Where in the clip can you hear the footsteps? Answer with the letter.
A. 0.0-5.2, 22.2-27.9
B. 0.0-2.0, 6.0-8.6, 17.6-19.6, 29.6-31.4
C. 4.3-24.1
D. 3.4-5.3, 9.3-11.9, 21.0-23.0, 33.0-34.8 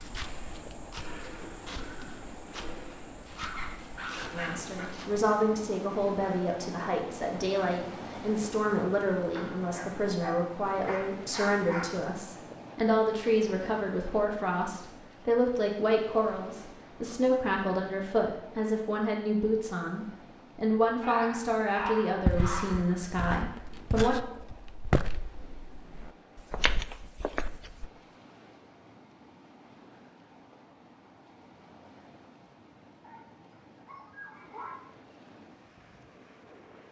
A.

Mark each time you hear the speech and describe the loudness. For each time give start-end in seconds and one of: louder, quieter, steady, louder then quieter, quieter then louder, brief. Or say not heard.
4.3-24.1 steady.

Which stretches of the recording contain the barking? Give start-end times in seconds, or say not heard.
3.4-5.3, 9.3-11.9, 21.0-23.0, 33.0-34.8.